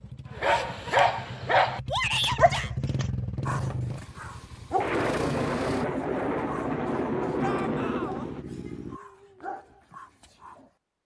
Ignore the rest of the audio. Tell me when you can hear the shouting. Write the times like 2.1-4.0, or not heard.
1.9-2.7, 7.4-8.2.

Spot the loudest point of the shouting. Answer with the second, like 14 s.
2 s.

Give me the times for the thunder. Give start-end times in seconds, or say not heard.
4.8-8.4.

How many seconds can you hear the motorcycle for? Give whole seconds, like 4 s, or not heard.
9 s.